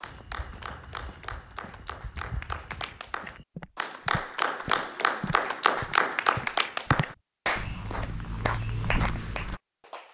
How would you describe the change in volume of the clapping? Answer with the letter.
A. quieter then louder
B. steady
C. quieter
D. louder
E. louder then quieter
E.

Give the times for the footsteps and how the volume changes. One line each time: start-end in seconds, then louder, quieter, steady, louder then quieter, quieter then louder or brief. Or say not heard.
0.0-9.6 louder.